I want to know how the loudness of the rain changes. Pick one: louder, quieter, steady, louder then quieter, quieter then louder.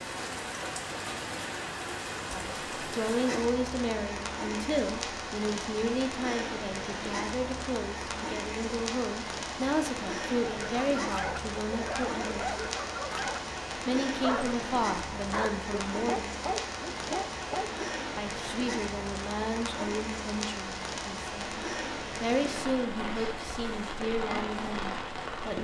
steady.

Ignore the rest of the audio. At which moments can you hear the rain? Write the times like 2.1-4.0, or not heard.
0.0-25.5.